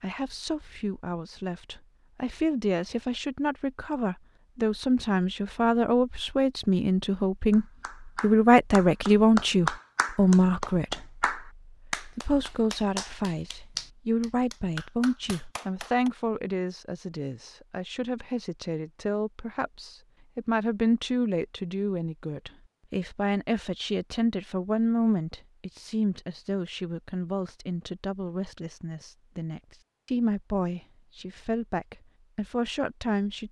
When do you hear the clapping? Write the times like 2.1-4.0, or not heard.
7.5-16.1.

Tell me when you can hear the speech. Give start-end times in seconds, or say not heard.
0.0-33.4.